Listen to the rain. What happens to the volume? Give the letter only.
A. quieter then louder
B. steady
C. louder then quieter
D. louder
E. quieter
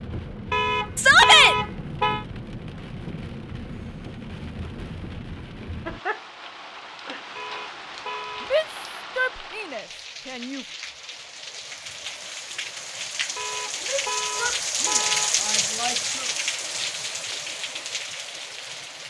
D.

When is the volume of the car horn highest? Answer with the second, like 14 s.
1 s.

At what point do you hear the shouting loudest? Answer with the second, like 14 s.
1 s.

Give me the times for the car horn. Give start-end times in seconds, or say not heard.
0.5-2.2, 7.3-8.6, 13.3-15.3.